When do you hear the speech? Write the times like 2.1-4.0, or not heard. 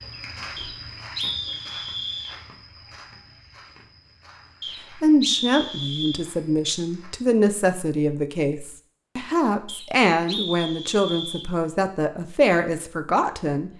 5.0-13.7.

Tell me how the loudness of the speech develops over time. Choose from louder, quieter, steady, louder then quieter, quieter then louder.
steady.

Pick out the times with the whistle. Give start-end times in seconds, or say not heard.
0.6-2.4, 4.6-6.2, 9.7-11.5.